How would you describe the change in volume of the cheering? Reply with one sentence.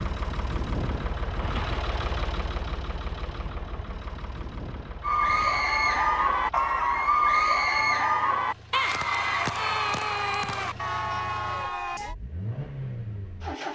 The volume of the cheering goes down.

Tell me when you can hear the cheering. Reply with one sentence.
The cheering can be heard from 5.0 to 12.2 s.